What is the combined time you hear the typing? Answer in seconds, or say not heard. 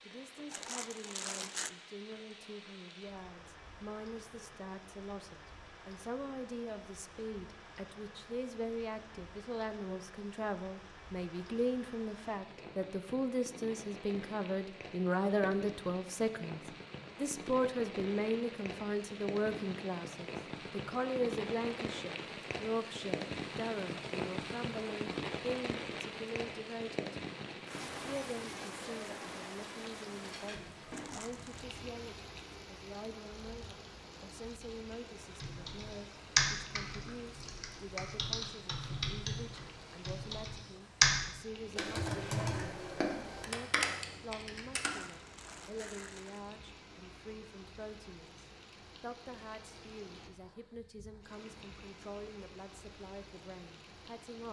10 s.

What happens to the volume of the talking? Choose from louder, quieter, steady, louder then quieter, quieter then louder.
louder then quieter.